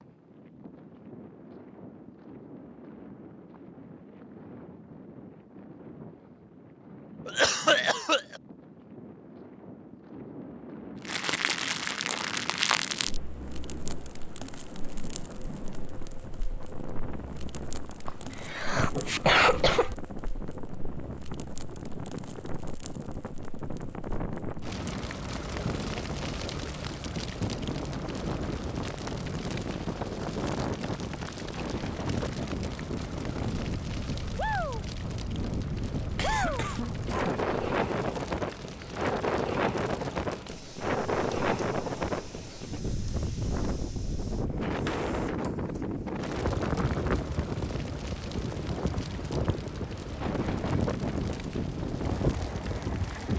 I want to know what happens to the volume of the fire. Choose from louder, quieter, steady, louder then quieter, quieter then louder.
quieter.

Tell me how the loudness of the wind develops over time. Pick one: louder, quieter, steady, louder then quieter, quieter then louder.
louder.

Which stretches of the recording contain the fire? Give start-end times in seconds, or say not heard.
11.1-53.3.